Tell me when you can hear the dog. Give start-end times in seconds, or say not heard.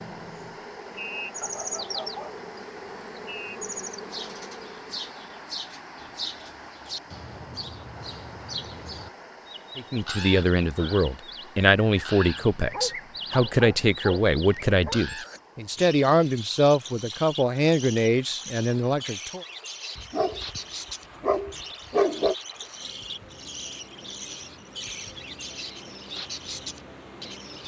1.4-2.4, 12.3-15.0, 19.9-20.6, 21.2-22.4.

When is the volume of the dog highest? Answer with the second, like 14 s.
22 s.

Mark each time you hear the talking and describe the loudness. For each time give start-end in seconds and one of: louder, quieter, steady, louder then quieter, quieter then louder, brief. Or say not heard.
9.8-19.4 steady.